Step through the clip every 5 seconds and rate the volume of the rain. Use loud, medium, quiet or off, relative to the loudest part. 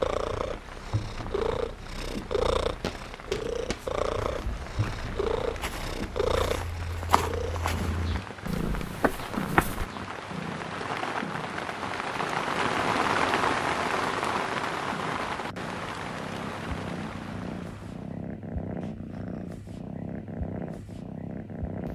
quiet, quiet, loud, medium, off.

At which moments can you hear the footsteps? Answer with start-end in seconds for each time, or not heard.
2.8-9.8.